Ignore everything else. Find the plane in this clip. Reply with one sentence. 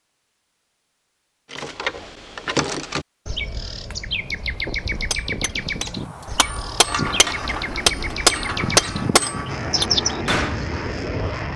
The plane can be heard from 7.0 to 11.5 s.